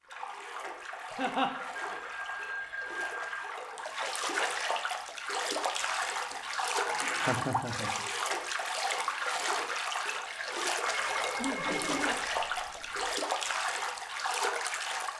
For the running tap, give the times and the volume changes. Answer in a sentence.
The running tap can be heard from 0.0 to 15.1 s, getting louder.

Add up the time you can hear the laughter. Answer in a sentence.
You can hear the laughter for 3 seconds altogether.